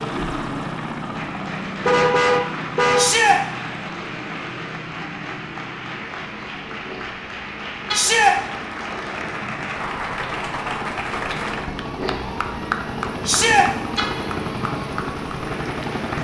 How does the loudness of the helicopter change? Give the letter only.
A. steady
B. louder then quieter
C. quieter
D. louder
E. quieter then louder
E.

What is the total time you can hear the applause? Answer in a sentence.
You can hear the applause for 16 seconds altogether.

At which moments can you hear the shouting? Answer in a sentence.
The shouting can be heard from 3.0 to 3.4 s, from 7.9 to 8.3 s and from 13.2 to 13.7 s.